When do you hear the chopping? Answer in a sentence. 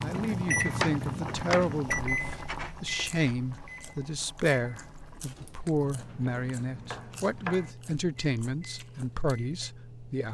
You can hear the chopping from 0.7 to 3.4 s and from 5.8 to 7.8 s.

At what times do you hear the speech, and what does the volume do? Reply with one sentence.
You can hear the speech from 0.0 to 10.2 s, at a steady volume.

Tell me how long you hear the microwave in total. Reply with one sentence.
You can hear the microwave for 10 seconds altogether.